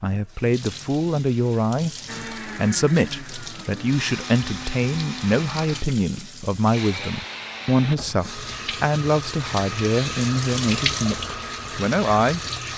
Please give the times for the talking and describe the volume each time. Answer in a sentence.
You can hear the talking from 0.0 to 12.5 s, at a steady volume.